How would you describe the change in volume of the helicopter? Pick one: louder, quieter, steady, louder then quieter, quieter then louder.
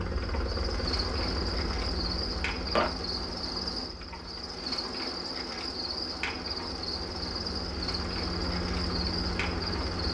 quieter then louder.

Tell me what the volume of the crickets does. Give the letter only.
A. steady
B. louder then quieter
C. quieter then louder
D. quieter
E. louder
A.